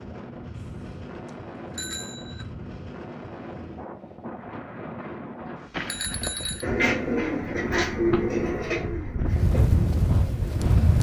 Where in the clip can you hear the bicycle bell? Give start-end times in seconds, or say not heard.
0.6-2.5, 5.7-6.7.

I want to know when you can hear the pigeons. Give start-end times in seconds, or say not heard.
6.6-10.9.